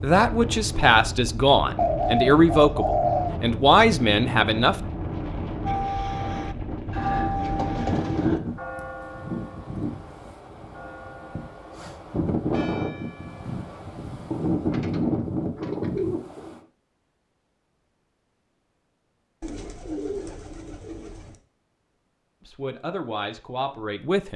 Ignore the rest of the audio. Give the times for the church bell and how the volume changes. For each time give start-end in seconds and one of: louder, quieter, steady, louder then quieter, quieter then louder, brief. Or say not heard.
5.7-13.8 quieter.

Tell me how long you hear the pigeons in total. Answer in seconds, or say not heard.
7 s.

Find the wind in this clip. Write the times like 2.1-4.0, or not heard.
0.0-16.6.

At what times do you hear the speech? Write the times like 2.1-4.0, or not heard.
0.0-4.8, 22.4-24.3.